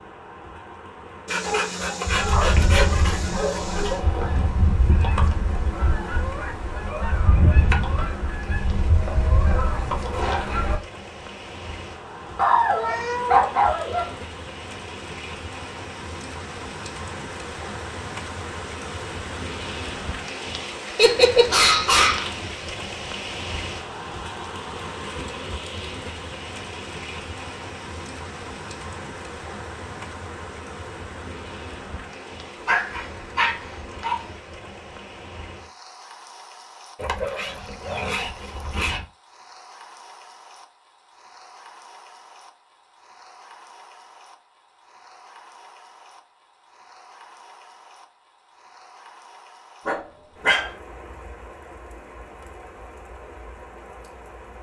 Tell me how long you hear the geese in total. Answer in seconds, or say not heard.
9 s.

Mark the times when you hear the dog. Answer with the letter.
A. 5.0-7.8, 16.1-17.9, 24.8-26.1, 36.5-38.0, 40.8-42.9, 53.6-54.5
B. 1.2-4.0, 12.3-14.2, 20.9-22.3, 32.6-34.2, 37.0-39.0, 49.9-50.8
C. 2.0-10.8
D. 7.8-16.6
B.